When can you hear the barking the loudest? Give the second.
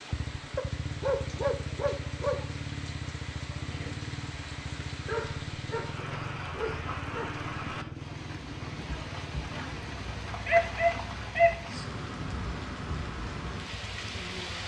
11 s.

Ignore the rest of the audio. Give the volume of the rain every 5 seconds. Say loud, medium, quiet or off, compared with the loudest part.
medium, loud, loud.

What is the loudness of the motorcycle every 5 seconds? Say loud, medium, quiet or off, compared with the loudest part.
loud, loud, medium.